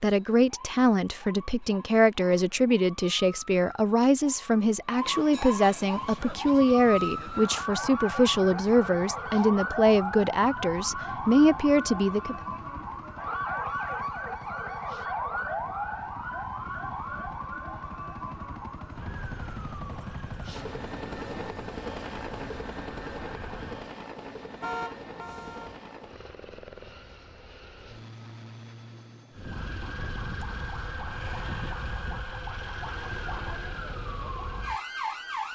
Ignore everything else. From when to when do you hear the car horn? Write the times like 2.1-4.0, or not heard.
24.6-25.8.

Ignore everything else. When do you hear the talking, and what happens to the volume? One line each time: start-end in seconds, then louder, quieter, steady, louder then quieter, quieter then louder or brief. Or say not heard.
0.0-12.3 steady.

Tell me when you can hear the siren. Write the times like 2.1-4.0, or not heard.
0.0-23.9, 29.3-35.5.